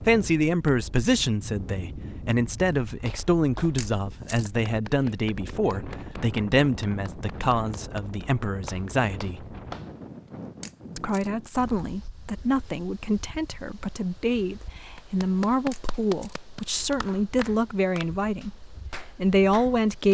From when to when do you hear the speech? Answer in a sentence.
The speech can be heard from 0.0 to 9.4 s and from 10.9 to 20.0 s.